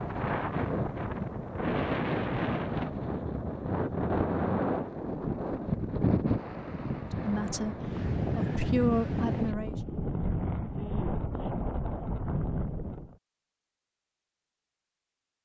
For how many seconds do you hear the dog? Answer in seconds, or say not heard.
not heard.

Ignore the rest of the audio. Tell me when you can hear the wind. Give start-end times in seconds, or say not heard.
0.0-13.2.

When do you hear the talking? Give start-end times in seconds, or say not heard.
7.2-9.8.